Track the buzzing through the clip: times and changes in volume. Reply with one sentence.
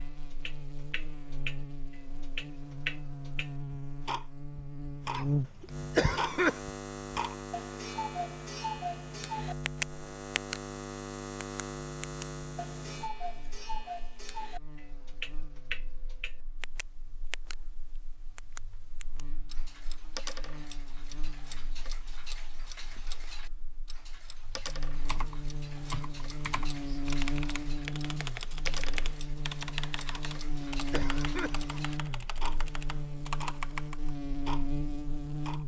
You can hear the buzzing from 0.0 to 35.6 s, getting quieter then louder.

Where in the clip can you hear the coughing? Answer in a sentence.
The coughing can be heard from 5.1 to 6.6 s and from 30.1 to 31.8 s.